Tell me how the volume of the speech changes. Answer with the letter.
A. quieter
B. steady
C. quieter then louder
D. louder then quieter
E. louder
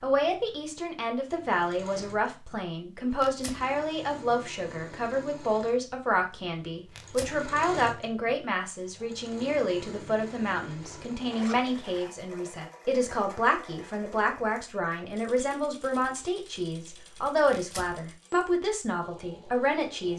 B.